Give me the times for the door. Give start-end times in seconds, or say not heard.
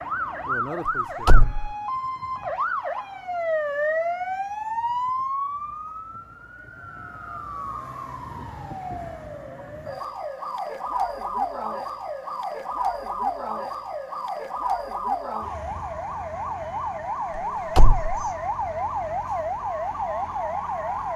1.2-1.7, 17.8-18.2.